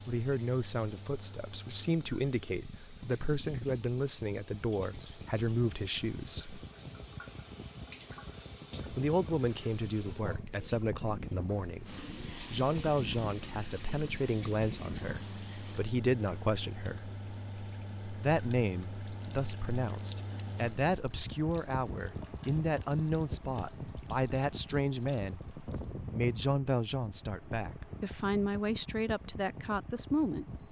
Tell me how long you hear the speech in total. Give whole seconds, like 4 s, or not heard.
27 s.